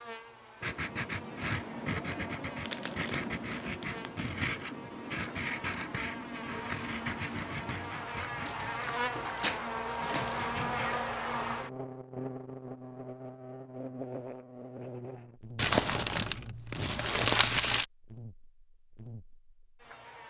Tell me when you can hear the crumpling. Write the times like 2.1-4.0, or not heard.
2.6-4.0, 8.4-10.4, 15.6-17.9.